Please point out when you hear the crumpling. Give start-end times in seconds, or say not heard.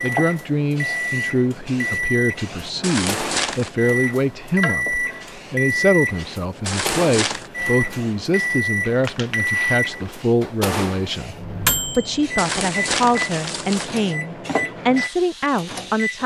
2.8-3.7, 6.7-7.5, 12.3-14.0.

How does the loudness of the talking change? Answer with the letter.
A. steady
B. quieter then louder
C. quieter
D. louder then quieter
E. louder
A.